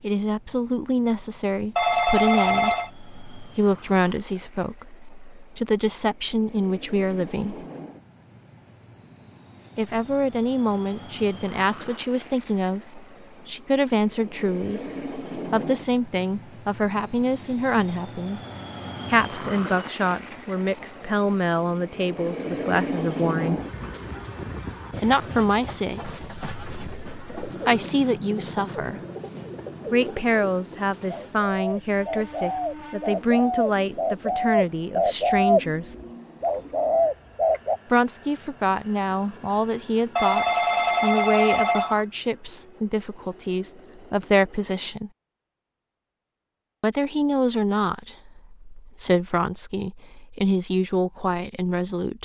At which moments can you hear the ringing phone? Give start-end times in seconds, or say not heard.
1.8-2.9, 40.1-42.0.